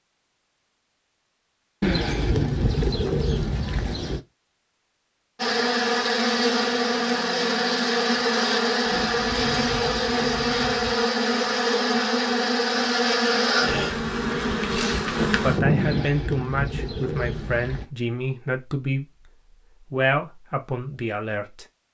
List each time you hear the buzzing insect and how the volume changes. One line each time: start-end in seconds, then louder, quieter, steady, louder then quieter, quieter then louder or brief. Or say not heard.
5.3-16.1 steady.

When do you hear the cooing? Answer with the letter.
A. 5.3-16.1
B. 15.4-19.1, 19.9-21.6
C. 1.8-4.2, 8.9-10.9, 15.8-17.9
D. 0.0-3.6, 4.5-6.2
C.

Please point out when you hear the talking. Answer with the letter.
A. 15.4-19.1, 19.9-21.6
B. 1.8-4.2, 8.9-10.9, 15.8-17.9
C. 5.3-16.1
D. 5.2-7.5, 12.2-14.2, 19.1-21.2
A.